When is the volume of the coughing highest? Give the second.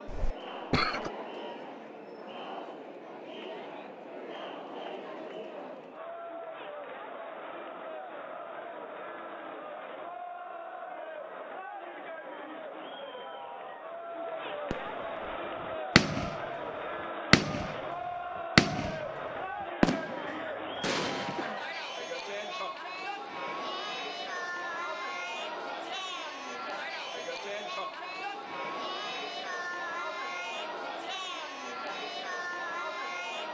1 s.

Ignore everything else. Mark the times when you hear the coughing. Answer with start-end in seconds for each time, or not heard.
0.1-1.1, 20.2-21.6.